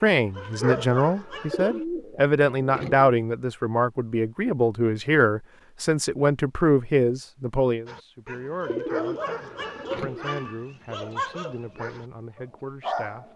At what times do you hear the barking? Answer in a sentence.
The barking can be heard from 0.1 to 1.9 s and from 7.8 to 13.3 s.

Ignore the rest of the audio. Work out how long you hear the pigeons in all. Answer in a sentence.
You can hear the pigeons for 3 seconds altogether.